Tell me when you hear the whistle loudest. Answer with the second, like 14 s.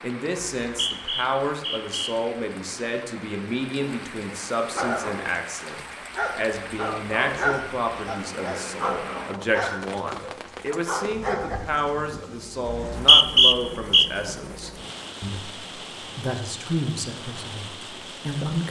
13 s.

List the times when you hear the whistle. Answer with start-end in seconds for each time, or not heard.
0.6-2.1, 12.7-14.1.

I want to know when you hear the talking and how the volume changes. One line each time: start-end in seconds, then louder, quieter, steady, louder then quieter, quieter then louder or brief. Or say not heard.
0.0-18.6 steady.